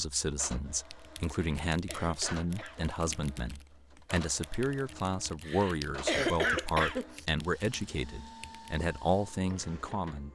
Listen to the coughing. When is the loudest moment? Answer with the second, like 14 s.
6 s.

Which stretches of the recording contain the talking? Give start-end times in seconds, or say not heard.
0.0-10.2.